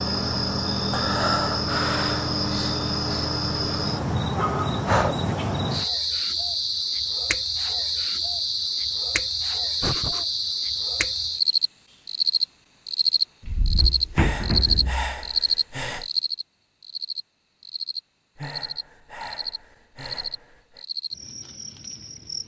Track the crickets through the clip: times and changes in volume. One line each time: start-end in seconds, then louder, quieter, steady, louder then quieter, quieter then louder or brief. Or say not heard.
0.0-22.4 quieter.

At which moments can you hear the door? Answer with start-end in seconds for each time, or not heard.
13.4-15.2.